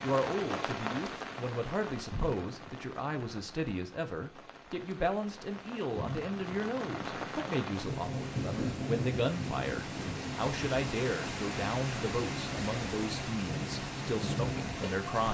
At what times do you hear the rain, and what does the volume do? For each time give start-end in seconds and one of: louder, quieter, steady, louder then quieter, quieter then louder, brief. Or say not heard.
0.0-15.2 quieter then louder.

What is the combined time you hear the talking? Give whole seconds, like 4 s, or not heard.
15 s.